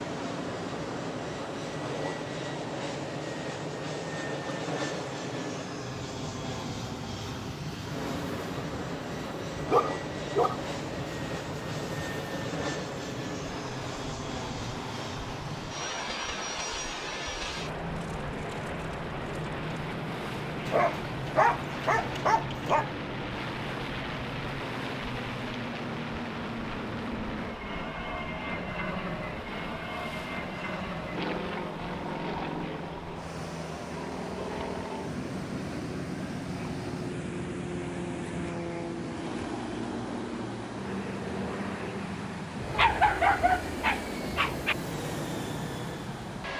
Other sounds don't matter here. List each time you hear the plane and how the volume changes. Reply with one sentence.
The plane can be heard from 0.0 to 46.5 s, at a steady volume.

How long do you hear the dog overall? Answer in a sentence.
You can hear the dog for 5 seconds altogether.